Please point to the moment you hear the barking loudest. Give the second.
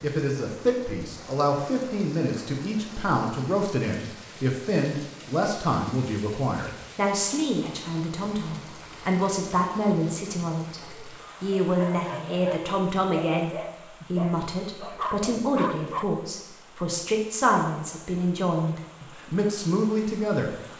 15 s.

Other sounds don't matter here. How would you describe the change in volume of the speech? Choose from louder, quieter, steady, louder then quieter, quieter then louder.
steady.